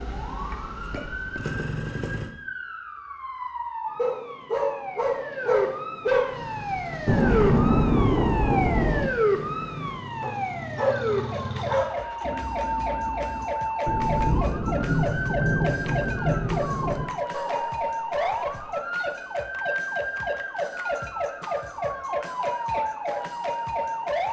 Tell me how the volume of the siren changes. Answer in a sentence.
The volume of the siren goes up.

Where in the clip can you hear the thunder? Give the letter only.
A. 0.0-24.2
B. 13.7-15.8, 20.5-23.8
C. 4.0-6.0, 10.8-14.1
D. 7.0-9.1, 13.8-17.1
D.